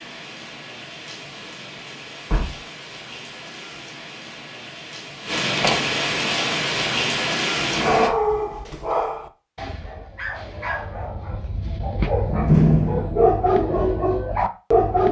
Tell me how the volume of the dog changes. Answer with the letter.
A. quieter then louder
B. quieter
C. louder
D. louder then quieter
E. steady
A.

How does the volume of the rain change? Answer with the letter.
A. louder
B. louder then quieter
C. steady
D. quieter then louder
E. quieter
A.